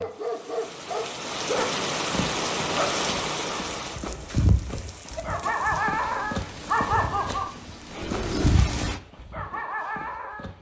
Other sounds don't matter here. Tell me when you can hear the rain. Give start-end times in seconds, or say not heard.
0.0-9.0.